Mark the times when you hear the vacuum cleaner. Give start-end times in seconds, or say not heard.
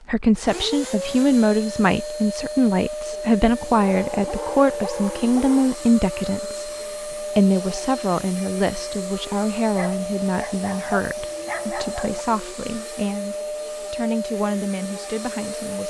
0.3-15.8.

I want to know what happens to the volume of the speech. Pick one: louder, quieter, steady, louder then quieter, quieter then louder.
quieter.